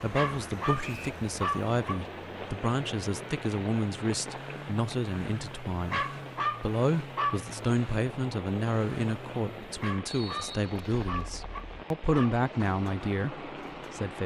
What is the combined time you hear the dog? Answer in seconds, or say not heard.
6 s.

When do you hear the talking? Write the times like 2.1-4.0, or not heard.
0.0-14.2.